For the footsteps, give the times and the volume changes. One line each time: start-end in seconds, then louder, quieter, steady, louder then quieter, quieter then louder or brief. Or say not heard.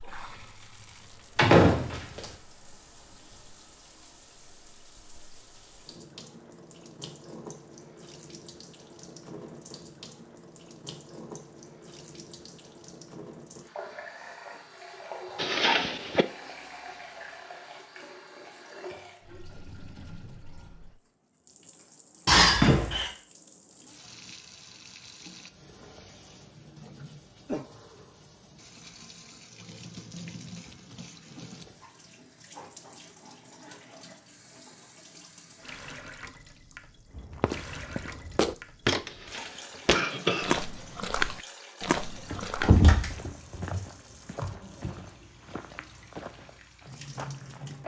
37.1-47.8 quieter.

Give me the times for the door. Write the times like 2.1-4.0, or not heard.
1.4-2.2, 22.2-23.1, 42.3-43.8.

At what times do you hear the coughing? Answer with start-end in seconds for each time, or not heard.
15.3-16.2, 39.1-40.6.